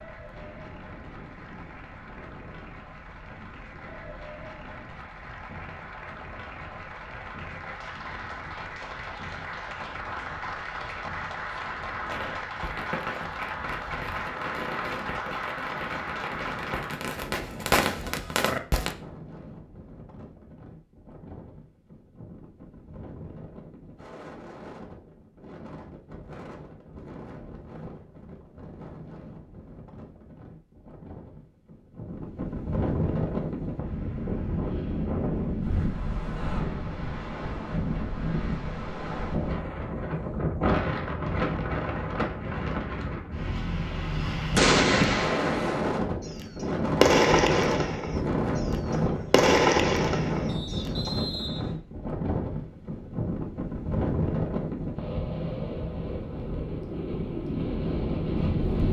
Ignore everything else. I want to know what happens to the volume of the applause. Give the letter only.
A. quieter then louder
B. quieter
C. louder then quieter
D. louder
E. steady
D.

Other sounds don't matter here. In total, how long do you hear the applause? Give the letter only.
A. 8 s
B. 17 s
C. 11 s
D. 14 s
B.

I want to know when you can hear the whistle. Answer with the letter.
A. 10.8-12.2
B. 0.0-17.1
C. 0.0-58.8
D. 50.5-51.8
D.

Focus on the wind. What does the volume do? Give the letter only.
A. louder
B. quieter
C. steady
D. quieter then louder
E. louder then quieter
A.